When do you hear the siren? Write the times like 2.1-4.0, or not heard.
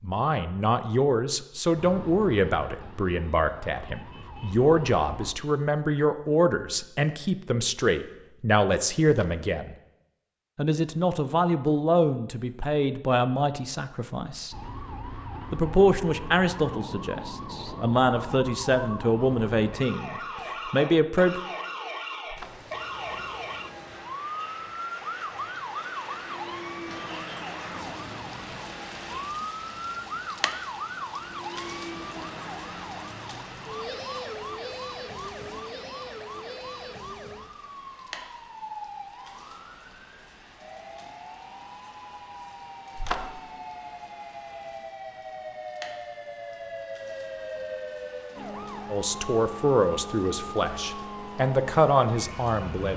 1.8-5.3, 14.5-52.9.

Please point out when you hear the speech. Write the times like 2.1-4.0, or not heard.
0.0-9.8, 10.6-14.6, 15.5-21.4, 48.9-52.9.